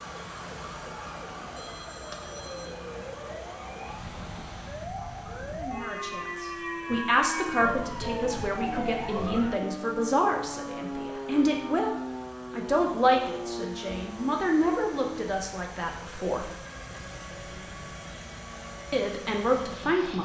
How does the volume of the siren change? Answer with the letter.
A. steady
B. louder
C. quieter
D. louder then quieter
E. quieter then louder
D.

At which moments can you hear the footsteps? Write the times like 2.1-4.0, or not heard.
not heard.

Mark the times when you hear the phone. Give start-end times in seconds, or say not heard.
1.6-2.8.